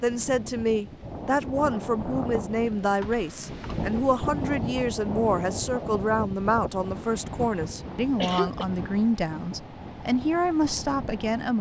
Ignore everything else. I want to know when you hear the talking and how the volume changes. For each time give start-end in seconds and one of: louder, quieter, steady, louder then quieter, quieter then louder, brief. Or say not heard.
0.0-11.5 steady.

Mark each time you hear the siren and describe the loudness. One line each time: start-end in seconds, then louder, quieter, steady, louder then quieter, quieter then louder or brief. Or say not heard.
not heard.